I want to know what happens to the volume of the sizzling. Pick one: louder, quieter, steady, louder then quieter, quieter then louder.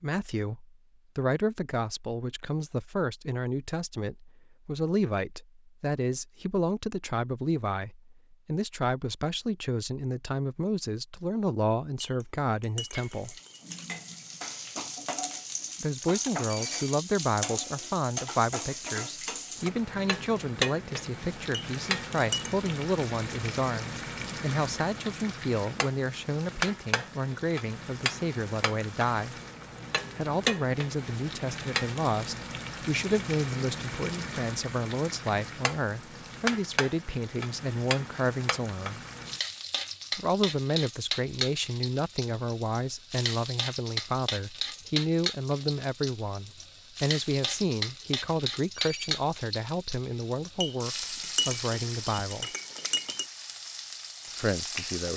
steady.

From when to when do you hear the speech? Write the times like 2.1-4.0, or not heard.
0.0-13.3, 15.8-29.4, 30.1-39.0, 40.1-52.5, 54.4-55.1.